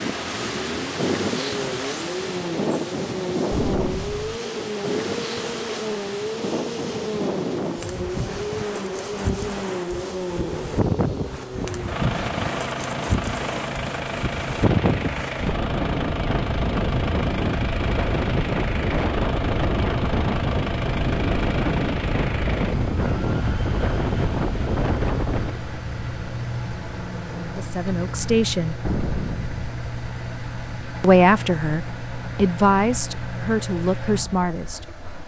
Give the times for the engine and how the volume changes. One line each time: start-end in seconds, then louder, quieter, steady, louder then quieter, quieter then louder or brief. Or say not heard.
0.0-35.2 steady.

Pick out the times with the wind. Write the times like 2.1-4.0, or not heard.
0.0-25.6.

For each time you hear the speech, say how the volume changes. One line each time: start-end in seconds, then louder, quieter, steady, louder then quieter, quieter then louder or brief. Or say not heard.
27.4-28.8 brief
31.0-35.2 louder then quieter.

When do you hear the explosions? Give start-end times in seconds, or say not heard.
3.5-4.4, 28.8-29.6.